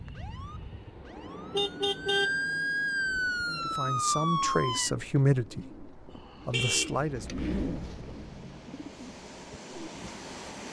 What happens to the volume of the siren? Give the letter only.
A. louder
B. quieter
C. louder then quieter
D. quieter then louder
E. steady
A.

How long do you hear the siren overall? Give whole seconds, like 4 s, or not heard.
5 s.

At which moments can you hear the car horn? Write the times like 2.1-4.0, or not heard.
1.1-2.4, 6.5-7.8.